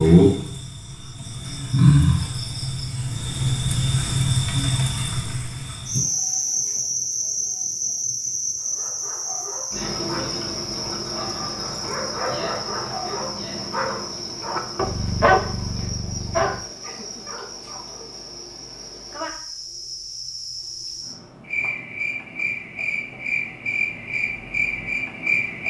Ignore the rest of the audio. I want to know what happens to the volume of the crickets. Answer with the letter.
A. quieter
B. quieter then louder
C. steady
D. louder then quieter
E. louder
B.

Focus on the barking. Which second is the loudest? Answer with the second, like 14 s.
15 s.